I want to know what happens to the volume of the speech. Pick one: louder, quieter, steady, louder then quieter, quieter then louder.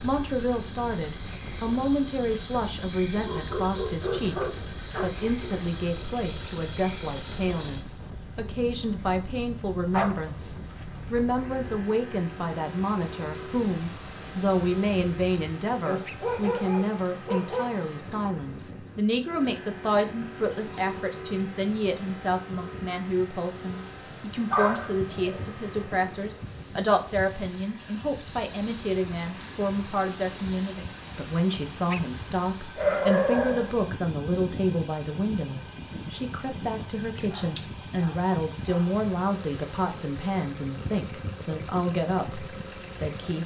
steady.